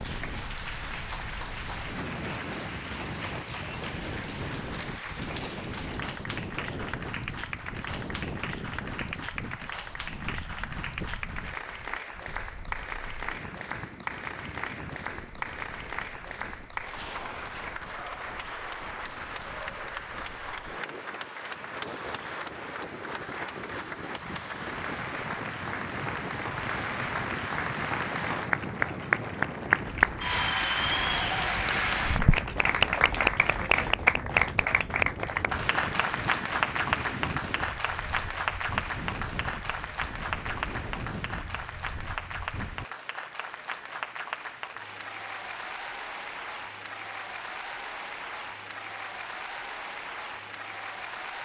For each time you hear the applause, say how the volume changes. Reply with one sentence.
The applause can be heard from 0.0 to 51.4 s, getting louder then quieter.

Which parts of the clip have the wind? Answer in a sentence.
The wind can be heard from 0.0 to 42.9 s.